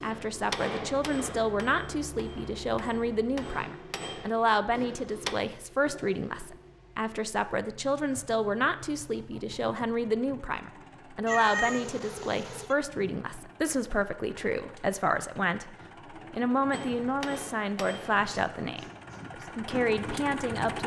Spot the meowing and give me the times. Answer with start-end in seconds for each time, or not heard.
11.2-12.8.